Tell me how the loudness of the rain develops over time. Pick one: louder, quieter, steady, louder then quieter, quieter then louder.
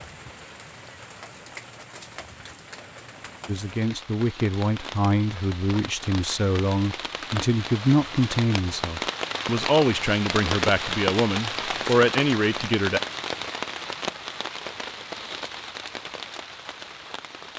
louder then quieter.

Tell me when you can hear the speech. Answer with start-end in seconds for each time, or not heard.
3.5-13.0.